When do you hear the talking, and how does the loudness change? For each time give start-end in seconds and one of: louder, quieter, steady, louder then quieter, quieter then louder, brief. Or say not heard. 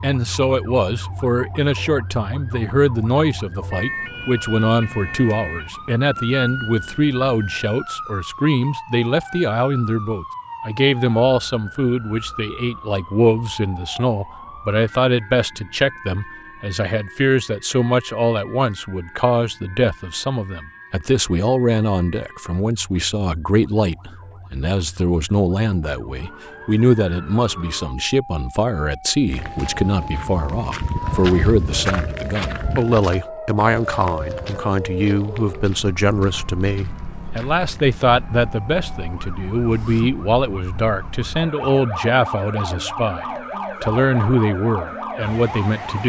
0.0-46.0 steady.